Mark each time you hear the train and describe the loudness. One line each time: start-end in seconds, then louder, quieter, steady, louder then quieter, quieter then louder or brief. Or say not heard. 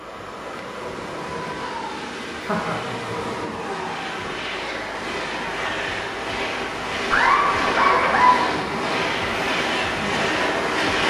0.0-11.0 louder.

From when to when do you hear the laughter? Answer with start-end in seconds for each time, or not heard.
2.5-3.1, 7.1-8.4.